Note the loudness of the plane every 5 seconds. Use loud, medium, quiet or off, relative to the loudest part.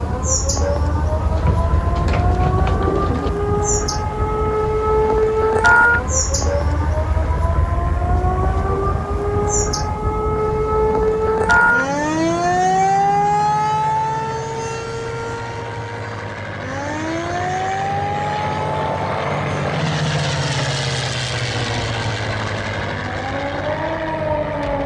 medium, quiet, medium, loud, loud.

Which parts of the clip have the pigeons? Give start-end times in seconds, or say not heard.
1.3-3.3.